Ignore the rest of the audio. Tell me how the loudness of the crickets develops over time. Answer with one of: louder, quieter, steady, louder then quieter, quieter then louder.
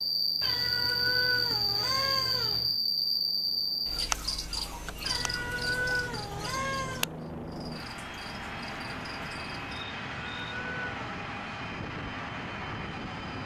quieter.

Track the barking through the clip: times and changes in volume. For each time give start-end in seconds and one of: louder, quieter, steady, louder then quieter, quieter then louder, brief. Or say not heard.
not heard.